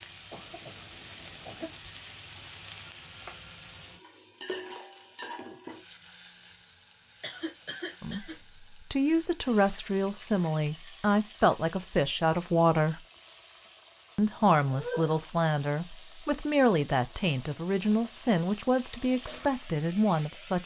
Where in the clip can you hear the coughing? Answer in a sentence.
The coughing can be heard from 0.3 to 1.8 s, from 7.2 to 8.3 s and from 14.3 to 15.2 s.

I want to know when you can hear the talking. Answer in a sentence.
You can hear the talking from 8.0 to 13.0 s and from 14.2 to 20.6 s.